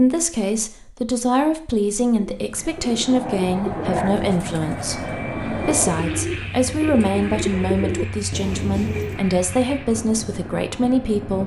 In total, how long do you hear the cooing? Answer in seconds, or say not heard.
7 s.